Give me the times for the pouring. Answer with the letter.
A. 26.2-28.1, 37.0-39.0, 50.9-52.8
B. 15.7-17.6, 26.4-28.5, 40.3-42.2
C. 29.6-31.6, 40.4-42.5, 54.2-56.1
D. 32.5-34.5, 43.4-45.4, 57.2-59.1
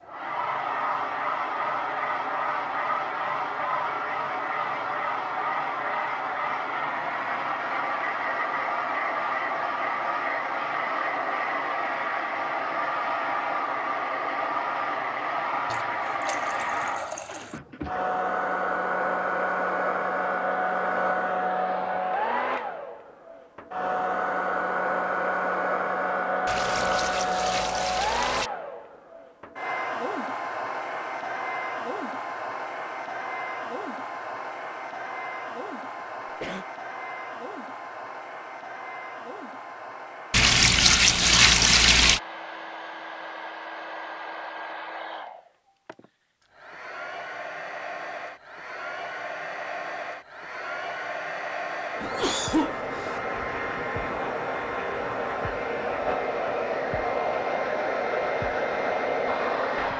B.